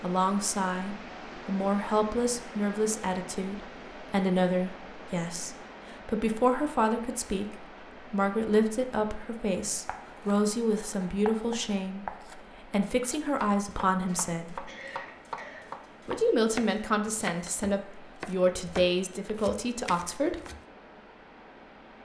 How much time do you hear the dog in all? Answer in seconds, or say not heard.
not heard.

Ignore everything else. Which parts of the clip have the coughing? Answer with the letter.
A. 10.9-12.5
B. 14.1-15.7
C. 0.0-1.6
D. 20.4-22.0
B.